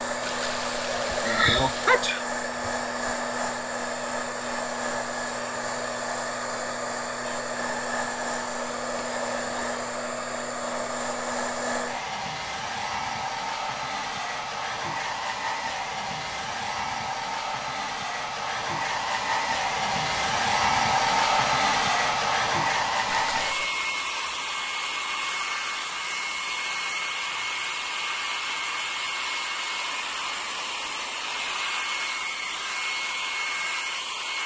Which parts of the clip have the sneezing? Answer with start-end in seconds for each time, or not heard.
1.1-2.7.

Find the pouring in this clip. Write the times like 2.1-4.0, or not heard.
0.2-2.0, 23.1-23.8.